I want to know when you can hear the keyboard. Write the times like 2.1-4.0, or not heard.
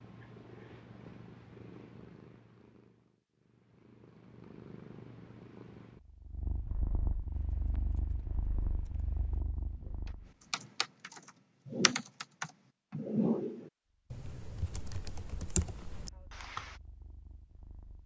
7.3-16.8.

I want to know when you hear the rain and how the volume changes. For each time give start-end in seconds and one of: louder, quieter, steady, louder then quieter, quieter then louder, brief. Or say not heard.
not heard.